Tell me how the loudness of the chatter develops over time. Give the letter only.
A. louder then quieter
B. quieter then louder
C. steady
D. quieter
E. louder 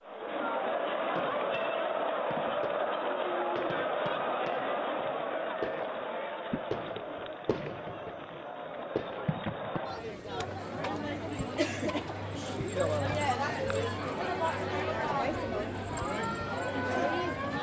B.